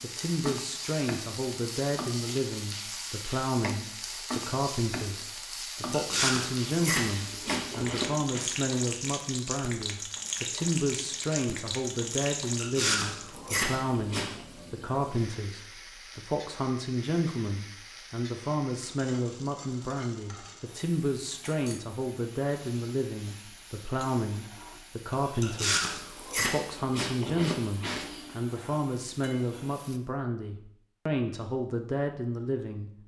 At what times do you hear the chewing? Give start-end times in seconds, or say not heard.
5.9-8.4, 12.6-14.3, 25.4-28.4.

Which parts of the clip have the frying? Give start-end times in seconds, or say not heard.
0.0-30.0.